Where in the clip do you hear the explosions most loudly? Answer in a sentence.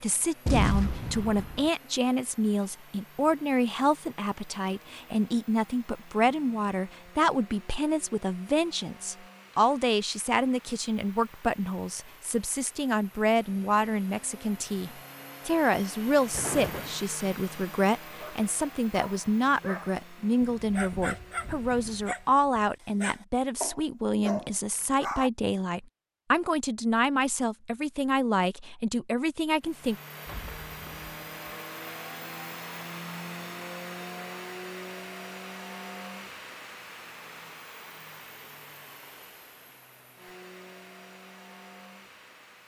The volume of the explosions peaks at 1 second.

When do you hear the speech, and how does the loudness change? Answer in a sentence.
The speech can be heard from 0.0 to 29.9 s, at a steady volume.